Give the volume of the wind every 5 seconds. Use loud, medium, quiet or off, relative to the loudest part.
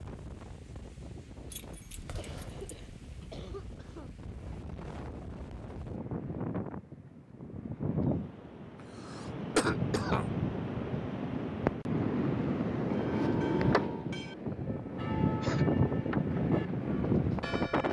quiet, medium, loud, loud.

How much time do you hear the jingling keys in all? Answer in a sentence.
You can hear the jingling keys for 2 seconds altogether.